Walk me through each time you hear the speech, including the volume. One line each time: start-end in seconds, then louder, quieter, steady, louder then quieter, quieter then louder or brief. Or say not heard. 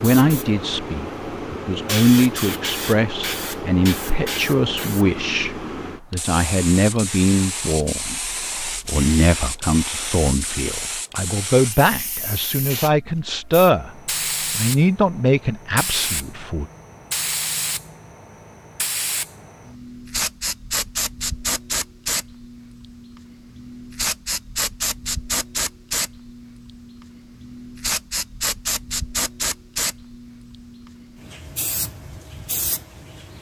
0.0-13.9 steady
14.6-16.6 brief.